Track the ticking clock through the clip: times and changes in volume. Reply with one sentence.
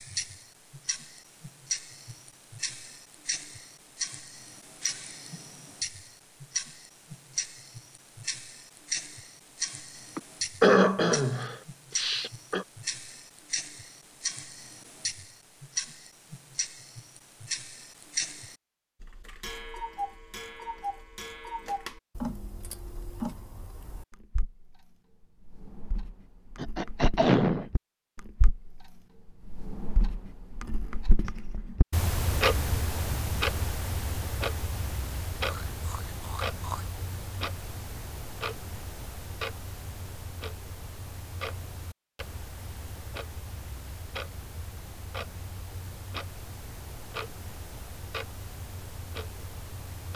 You can hear the ticking clock from 0.0 to 24.8 s, at a steady volume; and from 25.4 to 50.1 s, getting louder then quieter.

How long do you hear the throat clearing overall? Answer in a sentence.
The throat clearing can be heard for 5 seconds in total.